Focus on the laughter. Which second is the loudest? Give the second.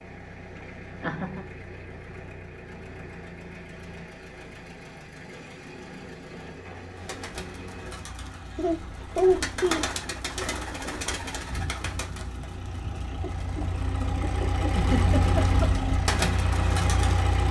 9 s.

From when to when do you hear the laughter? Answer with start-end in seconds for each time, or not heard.
1.0-1.4, 8.6-9.9, 14.7-15.7.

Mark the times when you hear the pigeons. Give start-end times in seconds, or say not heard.
7.0-17.4.